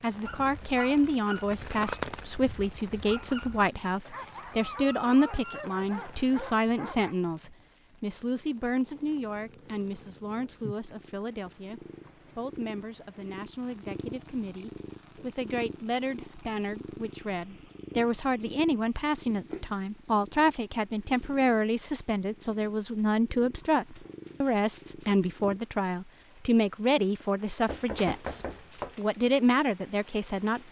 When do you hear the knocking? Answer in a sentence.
The knocking can be heard from 27.6 to 29.1 s.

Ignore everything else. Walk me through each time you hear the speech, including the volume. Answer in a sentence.
The speech can be heard from 0.0 to 30.6 s, getting quieter then louder.